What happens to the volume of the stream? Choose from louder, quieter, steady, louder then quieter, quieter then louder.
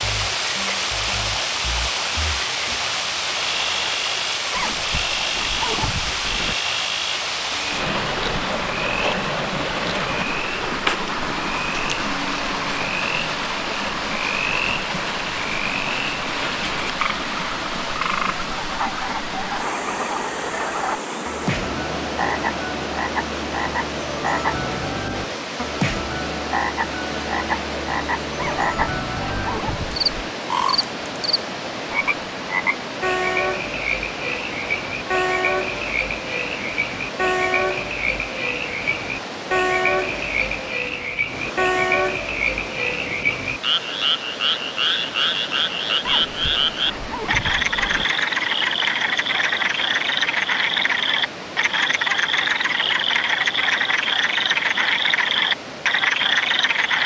quieter.